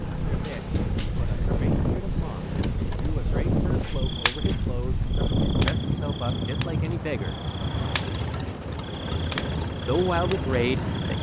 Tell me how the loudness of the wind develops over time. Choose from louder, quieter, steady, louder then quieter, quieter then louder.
quieter.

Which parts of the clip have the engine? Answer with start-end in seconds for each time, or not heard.
0.0-3.1, 7.7-11.1.